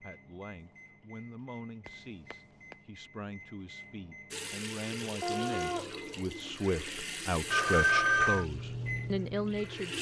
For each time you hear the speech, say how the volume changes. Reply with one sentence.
You can hear the speech from 0.0 to 9.9 s, getting louder.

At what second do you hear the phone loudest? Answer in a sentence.
The loudest moment of the phone is at 8 seconds.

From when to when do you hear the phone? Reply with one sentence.
The phone can be heard from 1.9 to 2.8 s and from 7.5 to 8.4 s.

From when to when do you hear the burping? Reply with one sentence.
The burping can be heard from 5.2 to 5.8 s.